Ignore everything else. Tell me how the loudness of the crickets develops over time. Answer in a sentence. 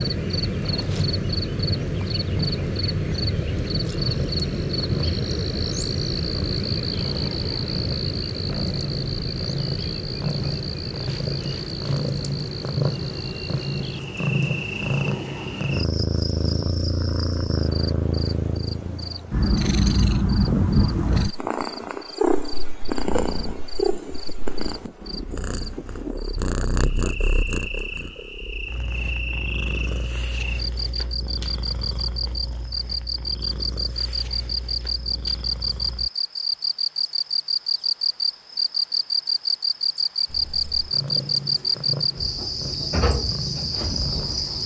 The loudness of the crickets goes down, then up.